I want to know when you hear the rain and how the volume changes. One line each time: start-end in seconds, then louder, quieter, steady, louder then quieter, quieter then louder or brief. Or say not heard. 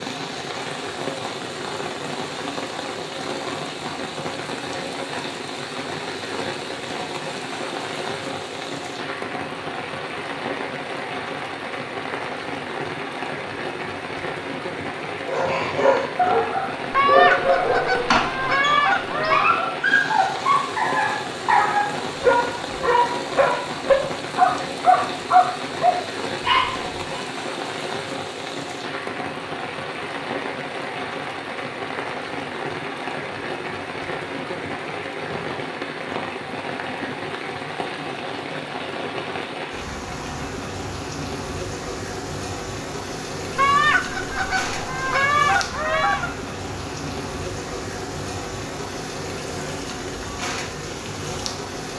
0.0-51.9 steady.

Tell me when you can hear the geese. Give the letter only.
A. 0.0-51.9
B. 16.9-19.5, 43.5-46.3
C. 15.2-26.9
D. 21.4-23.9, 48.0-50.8
B.